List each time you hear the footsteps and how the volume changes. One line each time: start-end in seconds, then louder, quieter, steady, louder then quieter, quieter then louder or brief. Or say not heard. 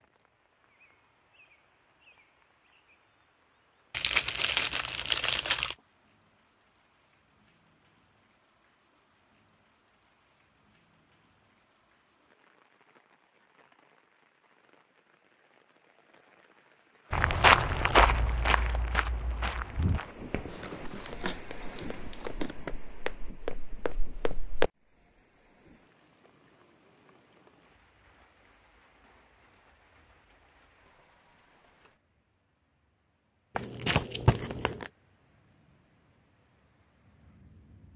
17.1-24.7 quieter then louder.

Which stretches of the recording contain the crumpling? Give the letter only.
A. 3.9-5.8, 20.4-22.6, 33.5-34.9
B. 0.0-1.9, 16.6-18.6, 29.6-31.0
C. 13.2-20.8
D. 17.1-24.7
A.